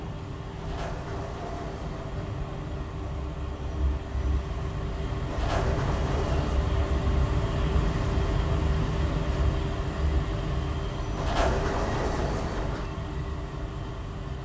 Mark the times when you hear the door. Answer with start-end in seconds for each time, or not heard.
0.6-2.2, 5.3-6.7, 11.2-12.9.